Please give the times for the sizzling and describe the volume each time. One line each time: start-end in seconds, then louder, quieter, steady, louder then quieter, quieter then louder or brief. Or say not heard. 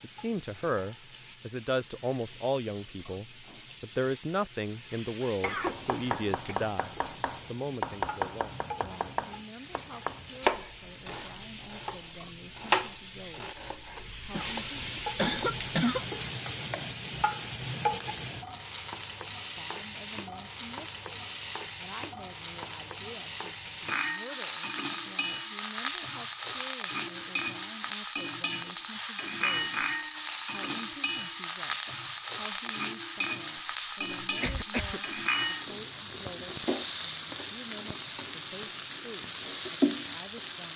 0.0-40.7 louder.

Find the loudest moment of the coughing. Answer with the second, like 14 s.
16 s.